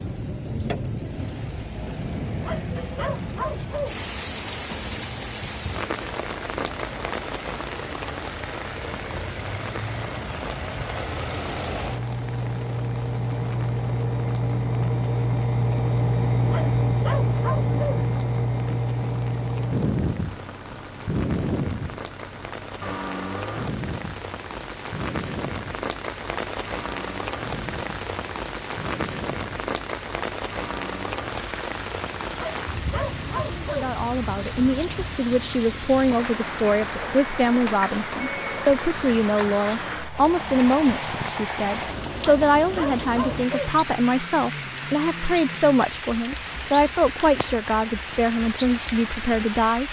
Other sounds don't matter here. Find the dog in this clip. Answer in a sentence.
You can hear the dog from 2.4 to 4.0 s, from 16.4 to 18.1 s, from 32.4 to 34.0 s and from 42.2 to 43.8 s.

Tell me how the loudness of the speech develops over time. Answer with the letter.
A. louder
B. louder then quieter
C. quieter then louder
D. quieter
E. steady
E.